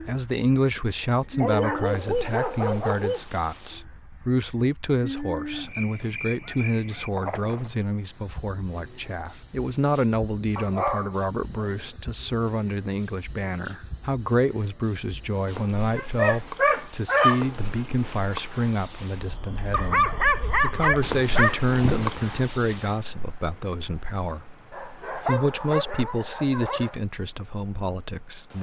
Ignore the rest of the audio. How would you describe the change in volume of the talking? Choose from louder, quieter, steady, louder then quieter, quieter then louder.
steady.